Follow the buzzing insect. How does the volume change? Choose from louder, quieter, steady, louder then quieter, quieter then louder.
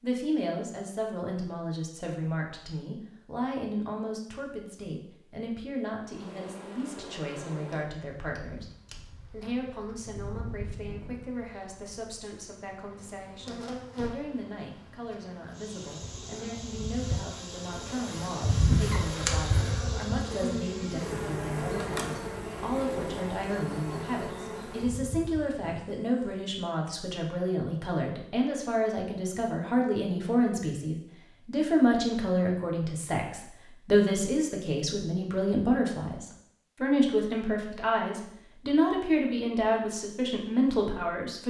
louder then quieter.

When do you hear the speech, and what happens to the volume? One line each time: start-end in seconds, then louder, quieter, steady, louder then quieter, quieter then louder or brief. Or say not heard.
0.0-8.7 steady
9.2-41.4 louder.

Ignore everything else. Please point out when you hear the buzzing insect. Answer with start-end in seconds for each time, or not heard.
6.0-26.4.